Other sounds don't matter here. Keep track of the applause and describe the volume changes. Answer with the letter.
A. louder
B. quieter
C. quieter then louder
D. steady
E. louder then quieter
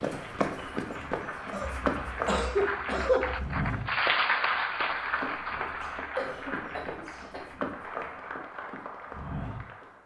E.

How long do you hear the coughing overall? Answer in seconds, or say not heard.
4 s.